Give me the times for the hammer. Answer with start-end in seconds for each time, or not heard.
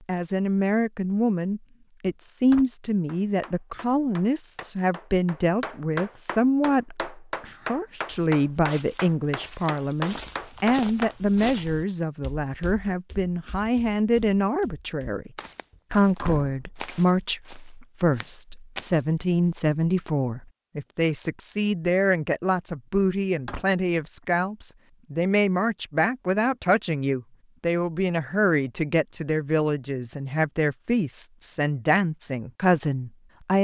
3.0-11.2.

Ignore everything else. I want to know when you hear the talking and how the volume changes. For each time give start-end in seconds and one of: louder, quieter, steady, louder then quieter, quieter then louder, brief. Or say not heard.
0.1-15.3 steady
15.9-33.5 steady.